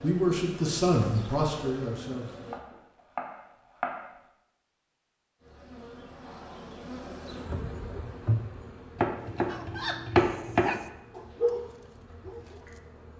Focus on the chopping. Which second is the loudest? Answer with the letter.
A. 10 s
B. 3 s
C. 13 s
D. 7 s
A.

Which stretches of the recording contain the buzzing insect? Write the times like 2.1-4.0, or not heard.
0.0-2.6, 5.4-13.1.